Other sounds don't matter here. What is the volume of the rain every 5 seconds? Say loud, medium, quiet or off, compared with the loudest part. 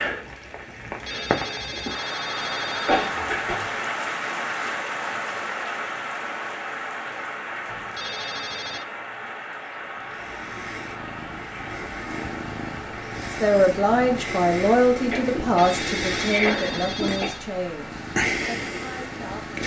loud, loud, medium, medium.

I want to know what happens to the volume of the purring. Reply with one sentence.
The loudness of the purring goes up.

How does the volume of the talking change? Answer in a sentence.
The volume of the talking goes down.